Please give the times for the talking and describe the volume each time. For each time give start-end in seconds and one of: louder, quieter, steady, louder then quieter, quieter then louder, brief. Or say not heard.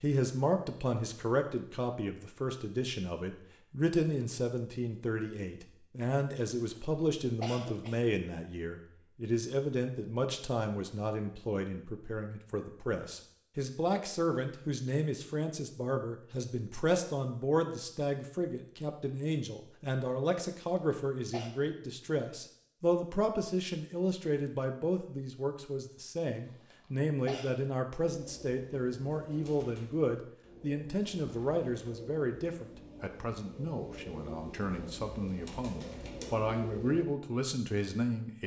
0.0-38.4 steady.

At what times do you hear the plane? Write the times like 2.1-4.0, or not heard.
not heard.